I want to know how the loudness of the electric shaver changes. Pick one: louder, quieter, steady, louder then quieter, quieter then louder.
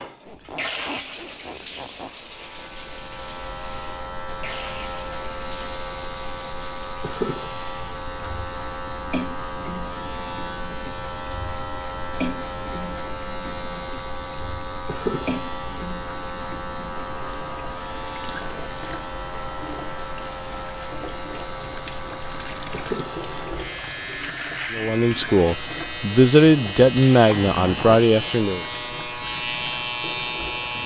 steady.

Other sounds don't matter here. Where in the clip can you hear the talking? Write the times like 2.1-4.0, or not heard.
24.7-28.6.